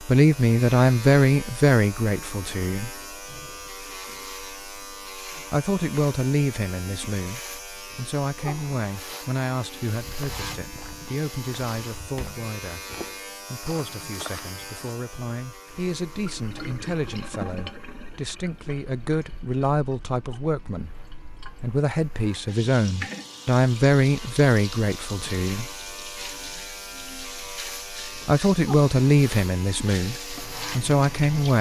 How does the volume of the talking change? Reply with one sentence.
The loudness of the talking goes down, then up.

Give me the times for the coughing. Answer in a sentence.
You can't hear the coughing here.